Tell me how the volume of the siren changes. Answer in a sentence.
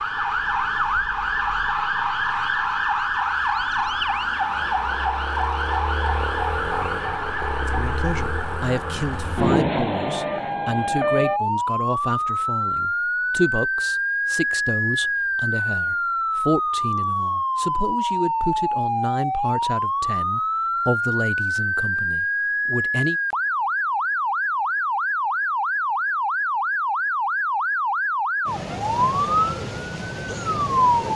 The loudness of the siren stays about the same.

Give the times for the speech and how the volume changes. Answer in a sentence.
You can hear the speech from 7.7 to 23.2 s, at a steady volume.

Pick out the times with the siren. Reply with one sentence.
The siren can be heard from 0.0 to 31.1 s.